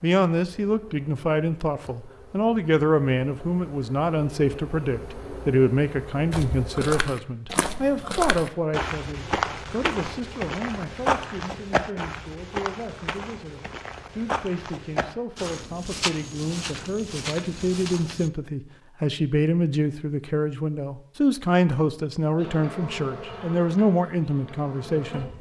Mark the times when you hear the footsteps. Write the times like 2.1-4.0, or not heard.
6.3-18.3.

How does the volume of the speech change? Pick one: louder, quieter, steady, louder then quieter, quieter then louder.
quieter then louder.